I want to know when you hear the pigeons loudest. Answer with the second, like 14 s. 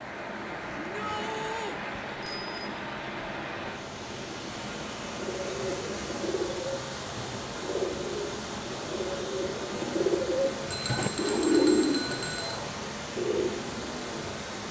12 s.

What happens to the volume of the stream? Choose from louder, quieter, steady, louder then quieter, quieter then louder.
steady.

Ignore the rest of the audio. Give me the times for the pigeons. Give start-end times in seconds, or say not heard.
5.0-14.2.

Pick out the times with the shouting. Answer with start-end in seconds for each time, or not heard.
0.8-1.8.